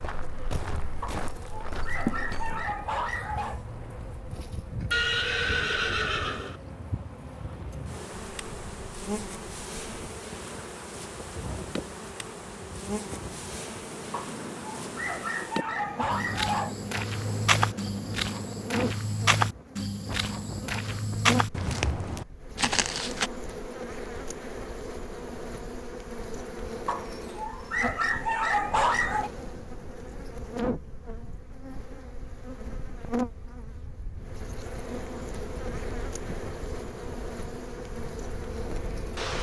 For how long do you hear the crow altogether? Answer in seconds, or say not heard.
not heard.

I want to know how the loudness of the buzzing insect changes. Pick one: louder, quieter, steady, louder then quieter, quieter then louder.
steady.